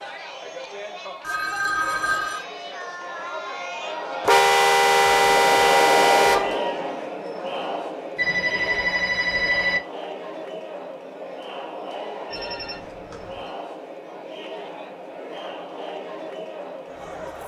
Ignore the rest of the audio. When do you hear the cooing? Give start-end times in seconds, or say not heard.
not heard.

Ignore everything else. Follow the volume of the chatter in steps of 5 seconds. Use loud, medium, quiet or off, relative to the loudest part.
medium, loud, medium, medium.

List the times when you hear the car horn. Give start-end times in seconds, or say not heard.
4.2-6.5.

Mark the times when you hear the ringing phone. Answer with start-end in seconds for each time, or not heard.
1.2-2.5, 8.2-9.8, 12.3-13.5.